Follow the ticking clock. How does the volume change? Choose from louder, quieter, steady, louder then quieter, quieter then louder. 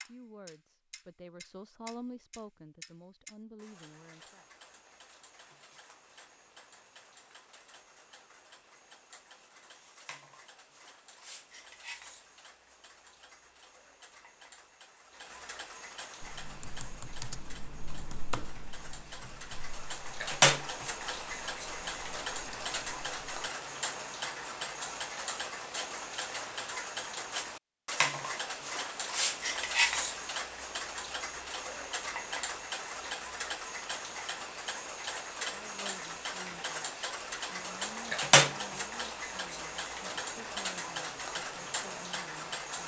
louder.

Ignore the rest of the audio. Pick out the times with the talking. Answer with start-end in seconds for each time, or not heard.
0.1-4.5, 35.5-42.8.